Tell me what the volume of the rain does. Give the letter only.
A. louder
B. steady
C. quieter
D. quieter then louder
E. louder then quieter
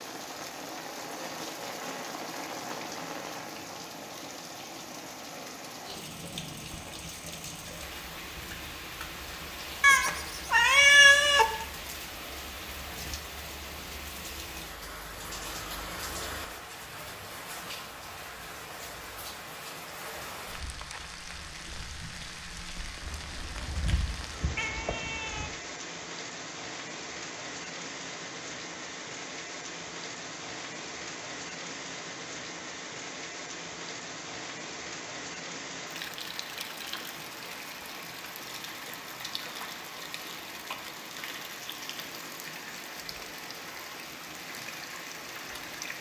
B.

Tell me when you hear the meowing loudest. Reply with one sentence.
The loudest moment of the meowing is at 11 seconds.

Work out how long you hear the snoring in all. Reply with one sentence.
The snoring can't be heard in this clip.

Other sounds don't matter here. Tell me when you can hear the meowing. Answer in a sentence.
The meowing can be heard from 9.8 to 11.4 s and from 23.0 to 25.5 s.